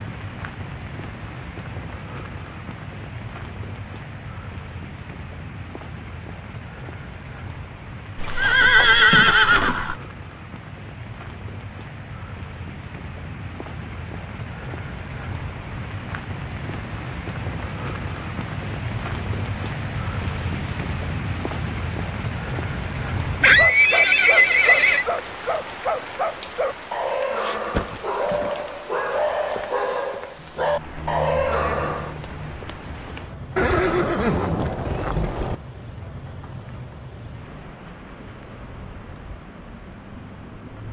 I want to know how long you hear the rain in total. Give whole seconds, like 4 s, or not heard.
41 s.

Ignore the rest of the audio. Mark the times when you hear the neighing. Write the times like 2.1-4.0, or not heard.
8.2-9.9, 23.4-25.1, 33.5-35.5.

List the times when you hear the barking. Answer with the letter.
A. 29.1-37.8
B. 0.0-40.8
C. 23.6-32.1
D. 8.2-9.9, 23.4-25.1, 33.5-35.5
C.